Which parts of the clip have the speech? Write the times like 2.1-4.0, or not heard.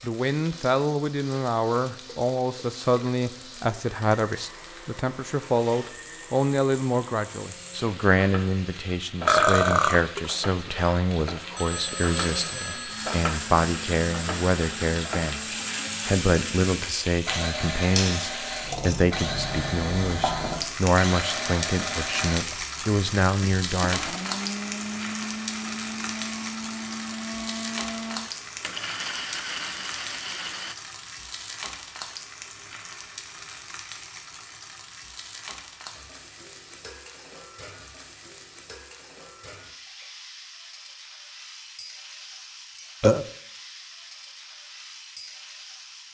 0.0-24.1.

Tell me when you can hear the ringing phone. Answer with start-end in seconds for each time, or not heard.
11.6-13.1.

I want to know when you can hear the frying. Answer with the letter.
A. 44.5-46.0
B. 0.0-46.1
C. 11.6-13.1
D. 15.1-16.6
B.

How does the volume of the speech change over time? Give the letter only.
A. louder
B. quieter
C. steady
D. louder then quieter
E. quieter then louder
C.